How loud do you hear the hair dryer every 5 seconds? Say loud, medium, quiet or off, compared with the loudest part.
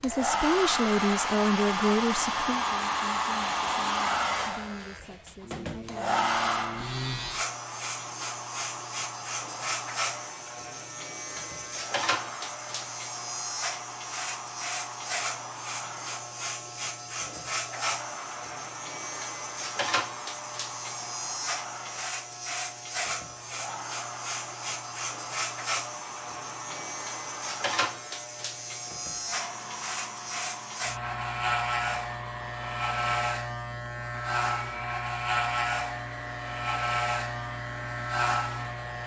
loud, medium, quiet, quiet, quiet, quiet, quiet, quiet.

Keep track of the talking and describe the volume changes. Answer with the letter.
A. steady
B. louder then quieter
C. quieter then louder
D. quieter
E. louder
D.